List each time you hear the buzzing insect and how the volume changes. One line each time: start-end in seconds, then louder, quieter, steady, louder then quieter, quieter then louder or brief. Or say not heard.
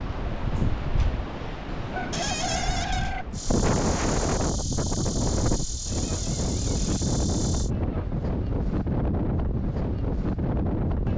3.3-7.7 steady.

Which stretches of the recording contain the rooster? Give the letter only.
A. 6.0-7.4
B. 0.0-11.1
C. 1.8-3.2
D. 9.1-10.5
C.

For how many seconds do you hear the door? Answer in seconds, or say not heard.
2 s.